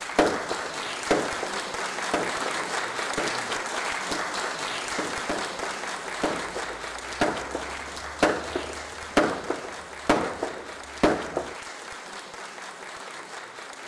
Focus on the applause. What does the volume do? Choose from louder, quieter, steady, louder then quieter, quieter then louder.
quieter.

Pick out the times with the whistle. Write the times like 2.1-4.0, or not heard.
not heard.